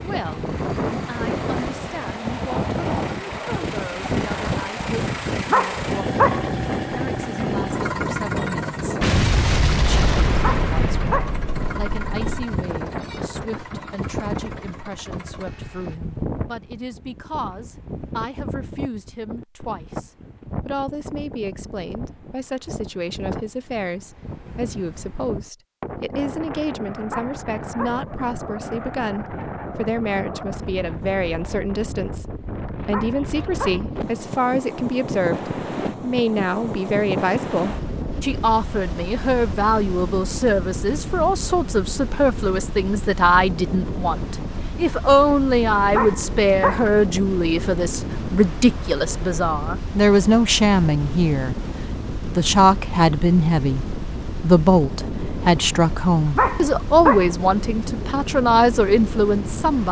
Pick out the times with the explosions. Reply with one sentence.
You can hear the explosions from 9.0 to 12.2 s.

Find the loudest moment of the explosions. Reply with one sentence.
The volume of the explosions peaks at 9 seconds.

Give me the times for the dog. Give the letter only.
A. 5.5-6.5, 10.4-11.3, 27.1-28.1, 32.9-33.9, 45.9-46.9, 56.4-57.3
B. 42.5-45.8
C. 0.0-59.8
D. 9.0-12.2
A.